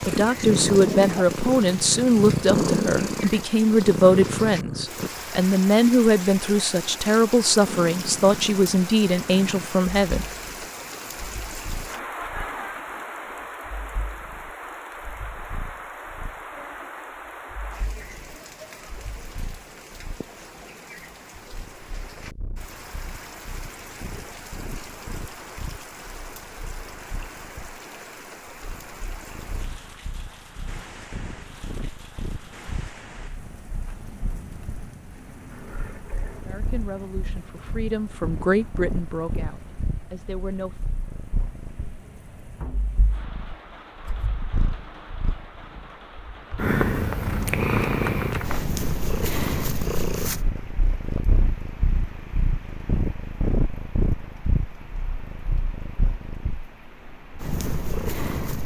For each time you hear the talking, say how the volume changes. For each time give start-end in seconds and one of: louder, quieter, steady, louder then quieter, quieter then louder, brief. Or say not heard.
0.1-10.2 steady
36.4-40.8 louder then quieter.